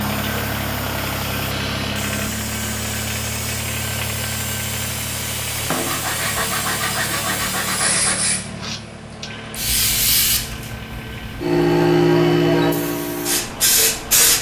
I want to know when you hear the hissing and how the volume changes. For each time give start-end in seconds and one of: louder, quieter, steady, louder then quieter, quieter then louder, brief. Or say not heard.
0.0-14.3 louder.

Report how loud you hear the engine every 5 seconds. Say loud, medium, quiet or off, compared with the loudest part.
loud, medium, medium.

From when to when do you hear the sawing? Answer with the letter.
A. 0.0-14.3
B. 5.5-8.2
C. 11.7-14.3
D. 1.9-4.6
B.